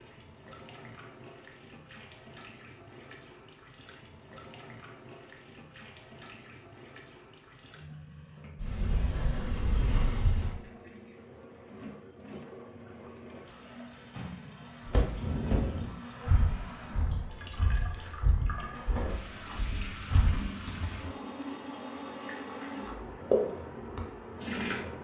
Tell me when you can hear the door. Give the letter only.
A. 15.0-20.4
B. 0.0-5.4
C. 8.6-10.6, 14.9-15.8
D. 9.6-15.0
C.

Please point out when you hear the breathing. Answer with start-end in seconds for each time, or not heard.
15.0-20.4.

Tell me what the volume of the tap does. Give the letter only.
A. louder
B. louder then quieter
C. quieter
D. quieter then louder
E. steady
A.